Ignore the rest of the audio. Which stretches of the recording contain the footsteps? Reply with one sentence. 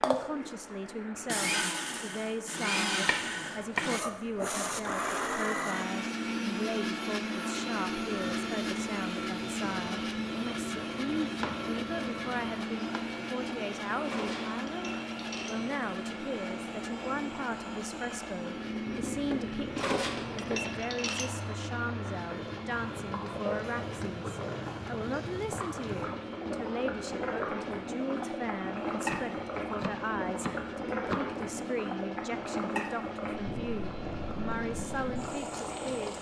You can't hear the footsteps here.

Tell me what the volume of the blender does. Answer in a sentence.
The loudness of the blender goes down.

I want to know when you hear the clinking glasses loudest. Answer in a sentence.
The volume of the clinking glasses peaks at 20 seconds.